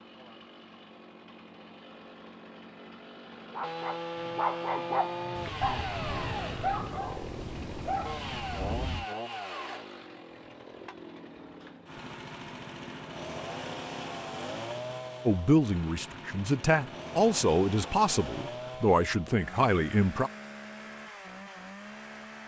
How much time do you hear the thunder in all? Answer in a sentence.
The thunder can be heard for 4 seconds in total.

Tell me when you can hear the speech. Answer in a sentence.
You can hear the speech from 15.2 to 20.3 s.